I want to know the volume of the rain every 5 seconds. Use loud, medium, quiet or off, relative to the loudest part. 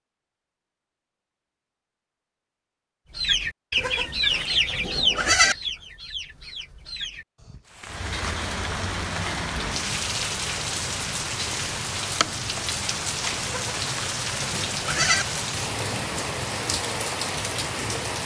off, loud, loud, loud.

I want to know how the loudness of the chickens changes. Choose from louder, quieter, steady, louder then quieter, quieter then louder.
quieter.